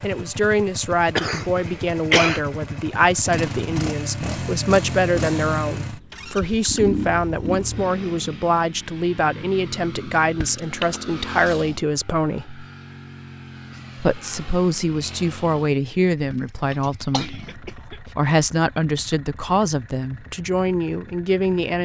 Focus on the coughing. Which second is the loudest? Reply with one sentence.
The volume of the coughing peaks at 2 seconds.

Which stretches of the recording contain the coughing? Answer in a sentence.
You can hear the coughing from 1.1 to 2.4 s, from 10.4 to 11.0 s and from 16.3 to 17.9 s.